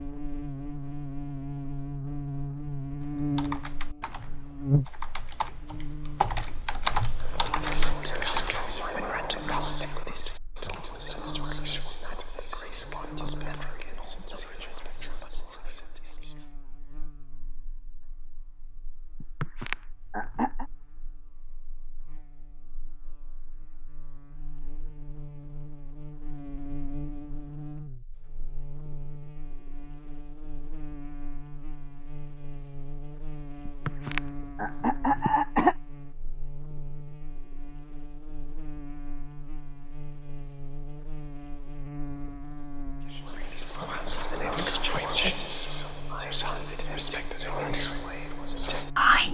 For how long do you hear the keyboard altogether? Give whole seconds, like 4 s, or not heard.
6 s.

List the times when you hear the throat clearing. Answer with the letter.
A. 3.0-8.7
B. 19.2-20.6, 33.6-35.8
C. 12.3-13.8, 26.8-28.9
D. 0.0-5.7
B.